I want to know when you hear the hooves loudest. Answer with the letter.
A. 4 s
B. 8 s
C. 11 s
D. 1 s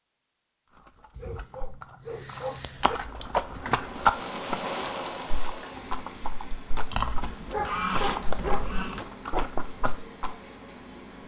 A.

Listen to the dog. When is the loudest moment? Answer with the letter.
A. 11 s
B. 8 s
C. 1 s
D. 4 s
B.